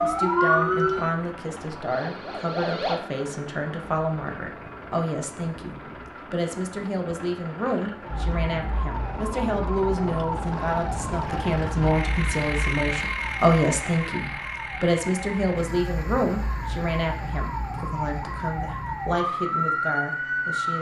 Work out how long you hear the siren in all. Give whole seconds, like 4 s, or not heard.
16 s.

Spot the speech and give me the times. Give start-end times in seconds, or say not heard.
0.0-20.7.